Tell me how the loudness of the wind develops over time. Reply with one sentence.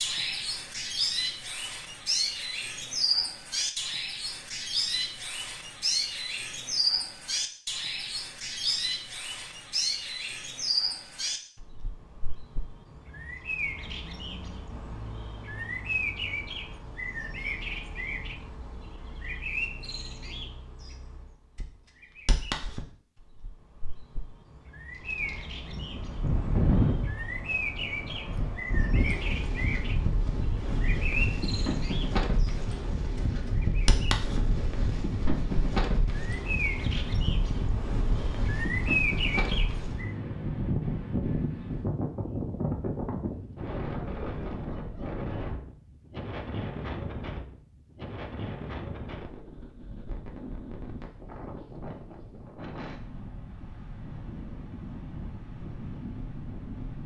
The loudness of the wind goes down.